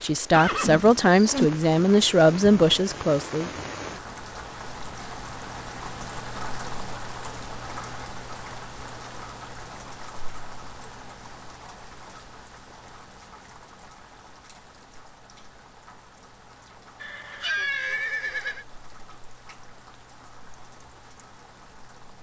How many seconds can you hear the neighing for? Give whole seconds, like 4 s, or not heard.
3 s.